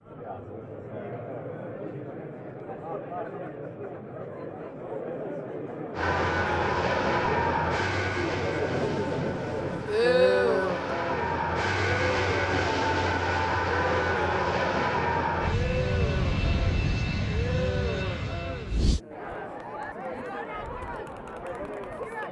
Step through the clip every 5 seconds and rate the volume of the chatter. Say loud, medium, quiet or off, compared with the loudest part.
medium, medium, loud, medium, medium.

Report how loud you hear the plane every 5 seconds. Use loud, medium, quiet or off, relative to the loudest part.
off, loud, loud, loud, off.